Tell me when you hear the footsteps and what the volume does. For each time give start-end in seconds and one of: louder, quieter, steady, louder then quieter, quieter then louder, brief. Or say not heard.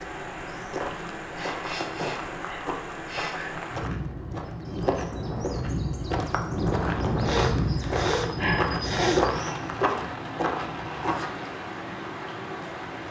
0.5-11.4 louder.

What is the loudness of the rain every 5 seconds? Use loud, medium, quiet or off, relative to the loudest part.
medium, loud, medium.